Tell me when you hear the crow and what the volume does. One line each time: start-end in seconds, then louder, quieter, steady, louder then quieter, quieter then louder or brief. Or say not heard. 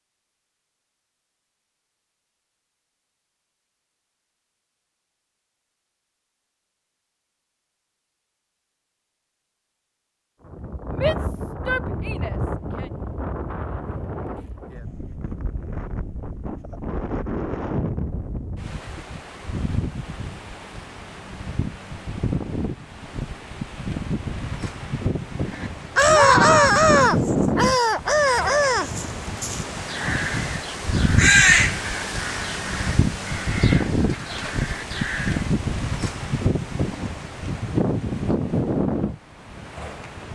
25.9-35.4 quieter.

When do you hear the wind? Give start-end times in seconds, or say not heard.
10.4-40.3.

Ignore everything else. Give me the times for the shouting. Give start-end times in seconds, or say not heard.
11.0-12.8, 26.1-26.7.